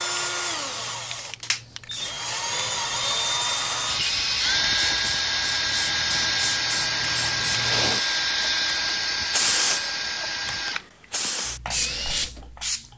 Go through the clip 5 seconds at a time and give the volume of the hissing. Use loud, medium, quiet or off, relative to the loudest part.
medium, loud, loud.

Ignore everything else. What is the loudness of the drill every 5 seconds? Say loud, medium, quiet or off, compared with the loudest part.
loud, loud, medium.